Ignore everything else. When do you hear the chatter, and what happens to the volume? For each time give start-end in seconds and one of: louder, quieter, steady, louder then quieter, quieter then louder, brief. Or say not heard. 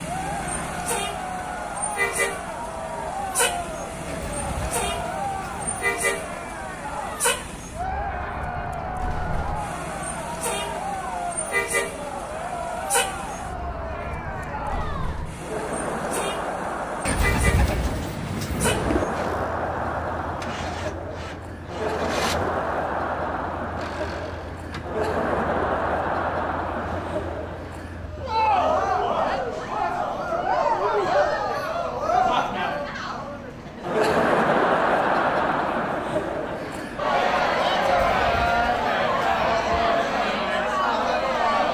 0.0-41.6 louder.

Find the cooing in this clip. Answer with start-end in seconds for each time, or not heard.
4.0-6.0, 17.1-19.1, 38.0-39.5.